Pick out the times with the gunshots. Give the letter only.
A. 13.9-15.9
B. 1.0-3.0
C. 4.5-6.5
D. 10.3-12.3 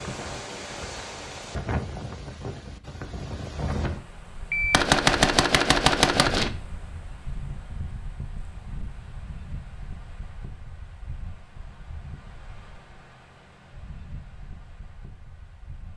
C.